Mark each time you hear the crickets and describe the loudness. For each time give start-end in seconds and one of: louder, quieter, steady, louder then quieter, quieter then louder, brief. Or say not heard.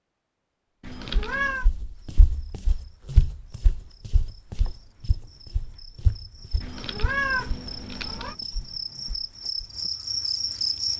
1.9-10.9 louder.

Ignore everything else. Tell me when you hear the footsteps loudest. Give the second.
3 s.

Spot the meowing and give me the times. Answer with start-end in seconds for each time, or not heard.
0.8-1.6, 6.6-8.3.